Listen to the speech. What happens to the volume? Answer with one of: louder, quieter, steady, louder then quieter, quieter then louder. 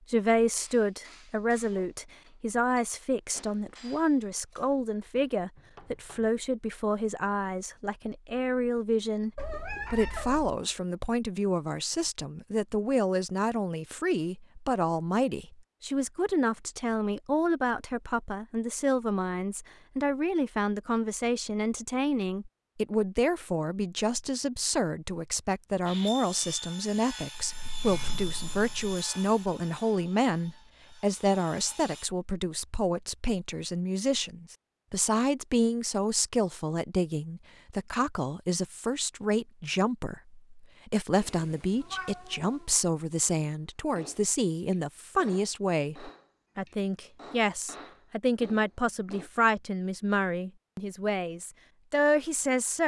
steady.